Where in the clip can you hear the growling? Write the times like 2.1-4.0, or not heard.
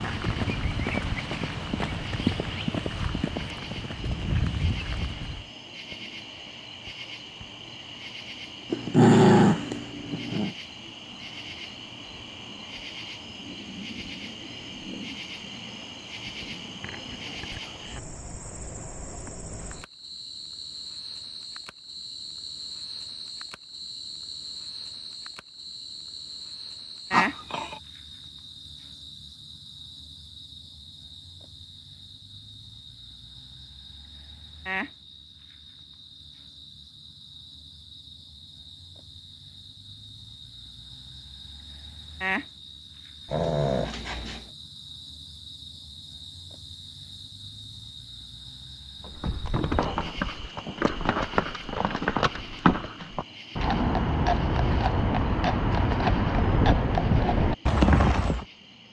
8.7-10.6, 27.1-27.8, 43.2-44.5.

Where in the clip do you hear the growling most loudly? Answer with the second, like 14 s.
9 s.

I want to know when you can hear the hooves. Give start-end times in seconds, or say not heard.
0.0-5.5, 49.0-58.5.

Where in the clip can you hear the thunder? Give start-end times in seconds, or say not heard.
not heard.